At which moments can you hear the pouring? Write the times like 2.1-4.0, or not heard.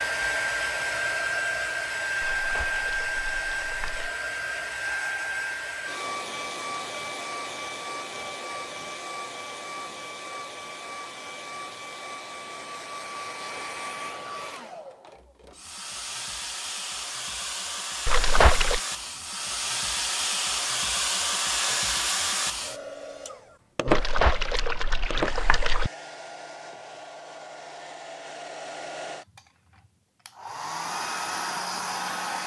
2.4-4.1, 18.1-18.8, 23.9-25.9.